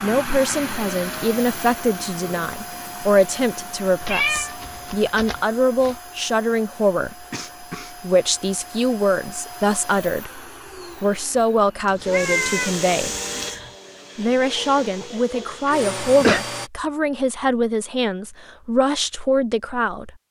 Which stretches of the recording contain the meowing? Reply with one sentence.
The meowing can be heard from 4.0 to 6.0 s and from 12.0 to 13.7 s.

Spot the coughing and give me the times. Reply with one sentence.
You can hear the coughing from 7.3 to 8.0 s and from 15.1 to 16.4 s.